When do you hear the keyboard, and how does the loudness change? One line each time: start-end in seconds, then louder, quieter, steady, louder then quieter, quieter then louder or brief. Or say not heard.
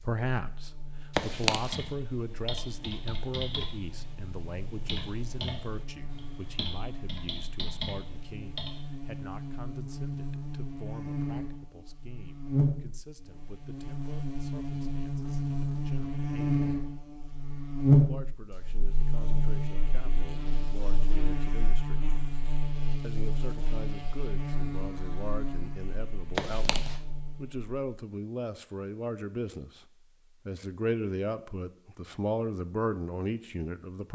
1.6-8.8 steady.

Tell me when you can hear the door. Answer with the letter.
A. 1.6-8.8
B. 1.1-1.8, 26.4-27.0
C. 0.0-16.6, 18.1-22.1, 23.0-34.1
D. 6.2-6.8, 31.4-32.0
B.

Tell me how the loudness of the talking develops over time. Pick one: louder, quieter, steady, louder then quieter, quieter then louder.
quieter then louder.